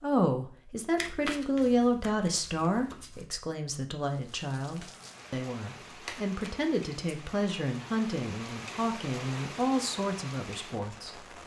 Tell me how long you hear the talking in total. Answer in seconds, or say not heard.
11 s.